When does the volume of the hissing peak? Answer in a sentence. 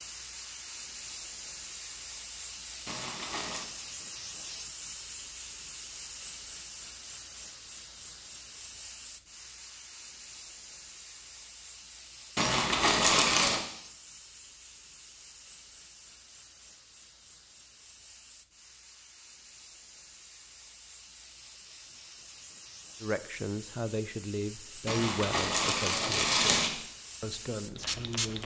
The loudest moment of the hissing is at 28 seconds.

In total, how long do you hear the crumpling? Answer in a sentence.
The crumpling can be heard for 4 seconds in total.